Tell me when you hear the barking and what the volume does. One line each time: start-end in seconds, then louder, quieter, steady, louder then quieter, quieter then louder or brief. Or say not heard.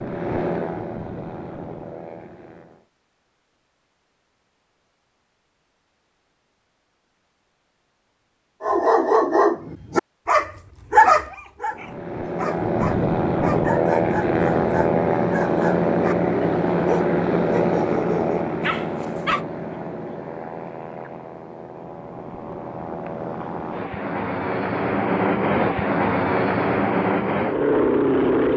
8.6-19.4 quieter.